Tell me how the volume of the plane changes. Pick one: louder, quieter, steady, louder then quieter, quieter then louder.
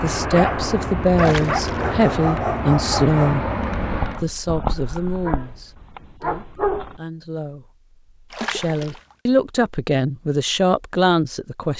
steady.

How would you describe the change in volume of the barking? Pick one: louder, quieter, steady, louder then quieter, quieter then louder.
quieter.